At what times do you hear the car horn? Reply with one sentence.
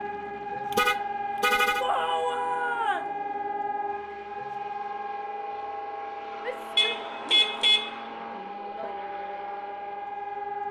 The car horn can be heard from 0.7 to 1.9 s and from 6.8 to 8.0 s.